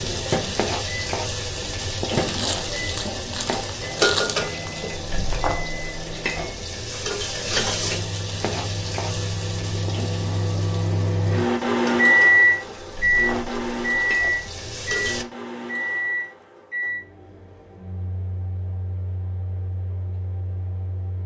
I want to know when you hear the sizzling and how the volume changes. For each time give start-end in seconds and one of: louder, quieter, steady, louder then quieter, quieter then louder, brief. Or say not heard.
0.0-15.2 quieter.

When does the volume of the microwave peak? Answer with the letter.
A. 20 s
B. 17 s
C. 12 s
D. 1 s
C.